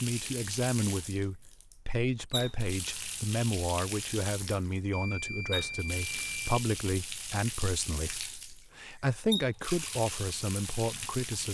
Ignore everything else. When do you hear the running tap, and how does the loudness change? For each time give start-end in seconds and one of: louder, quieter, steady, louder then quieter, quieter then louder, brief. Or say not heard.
0.0-11.4 steady.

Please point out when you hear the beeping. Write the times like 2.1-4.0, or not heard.
4.9-6.6.